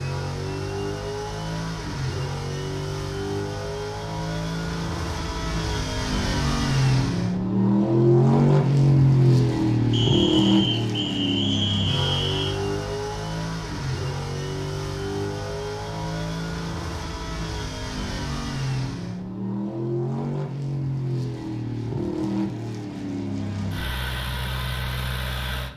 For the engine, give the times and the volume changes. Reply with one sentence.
You can hear the engine from 0.0 to 25.7 s, getting louder then quieter.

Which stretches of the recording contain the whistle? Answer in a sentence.
You can hear the whistle from 9.9 to 12.6 s.